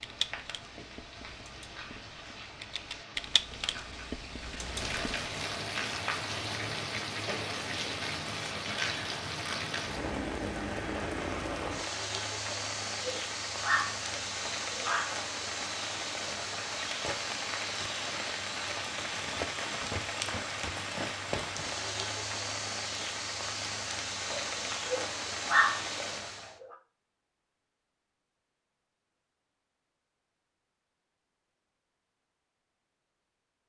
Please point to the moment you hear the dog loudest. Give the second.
26 s.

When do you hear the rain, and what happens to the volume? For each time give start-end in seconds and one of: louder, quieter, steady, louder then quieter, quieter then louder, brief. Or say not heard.
0.0-26.6 louder.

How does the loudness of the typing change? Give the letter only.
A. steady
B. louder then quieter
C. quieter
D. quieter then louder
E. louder
B.